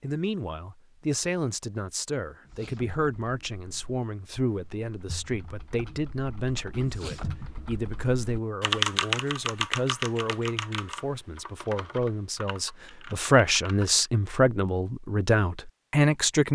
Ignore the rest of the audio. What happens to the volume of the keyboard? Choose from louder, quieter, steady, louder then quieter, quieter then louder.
louder then quieter.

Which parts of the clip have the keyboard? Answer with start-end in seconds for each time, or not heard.
2.5-14.1.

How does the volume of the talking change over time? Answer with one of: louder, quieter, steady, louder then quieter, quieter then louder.
louder.